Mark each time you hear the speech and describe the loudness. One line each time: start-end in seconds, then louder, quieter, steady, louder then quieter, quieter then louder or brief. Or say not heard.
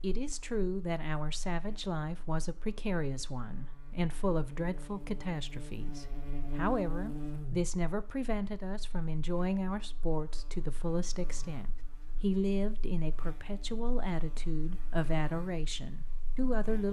0.0-16.8 steady.